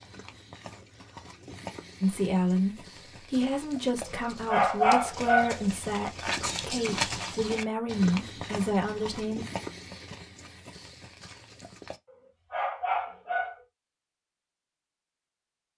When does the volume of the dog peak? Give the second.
5 s.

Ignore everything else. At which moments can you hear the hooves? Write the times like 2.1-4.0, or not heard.
0.0-12.0.